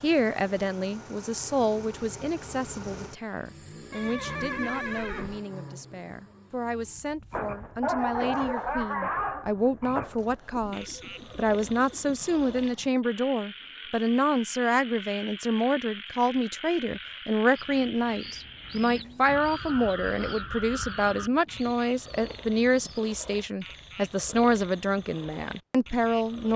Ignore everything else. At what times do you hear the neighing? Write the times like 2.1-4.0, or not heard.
3.9-5.4.